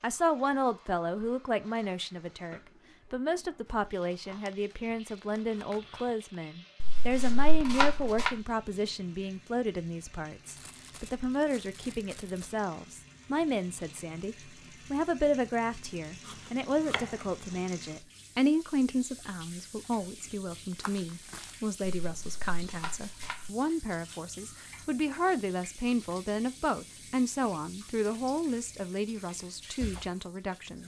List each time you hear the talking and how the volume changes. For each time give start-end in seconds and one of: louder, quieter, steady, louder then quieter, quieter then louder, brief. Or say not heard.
0.0-30.8 steady.